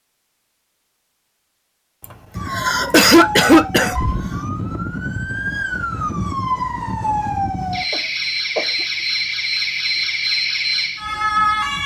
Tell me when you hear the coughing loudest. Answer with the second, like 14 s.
3 s.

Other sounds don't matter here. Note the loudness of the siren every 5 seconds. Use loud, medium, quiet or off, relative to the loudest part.
medium, loud, loud.